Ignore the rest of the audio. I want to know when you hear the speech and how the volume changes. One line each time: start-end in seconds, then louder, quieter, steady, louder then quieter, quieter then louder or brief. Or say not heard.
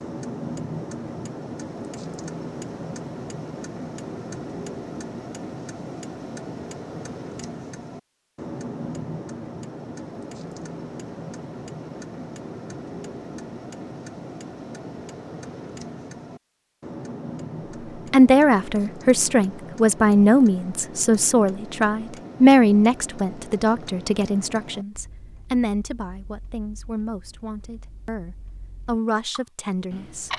18.1-30.3 quieter.